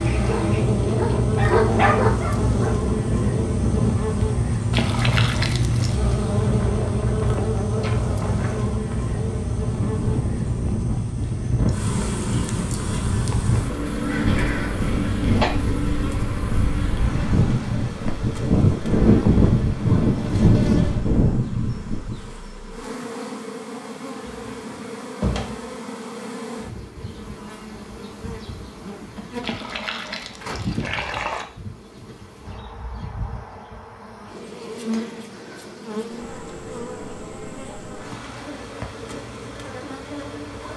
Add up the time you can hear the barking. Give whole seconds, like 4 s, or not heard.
3 s.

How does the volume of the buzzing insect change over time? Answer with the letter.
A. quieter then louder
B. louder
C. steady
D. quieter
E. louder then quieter
D.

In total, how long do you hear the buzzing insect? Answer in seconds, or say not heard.
41 s.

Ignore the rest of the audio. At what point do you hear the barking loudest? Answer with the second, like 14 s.
2 s.